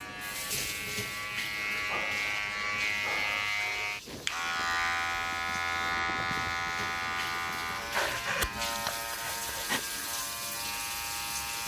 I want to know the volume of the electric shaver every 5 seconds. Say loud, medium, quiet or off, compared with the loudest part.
loud, loud, medium.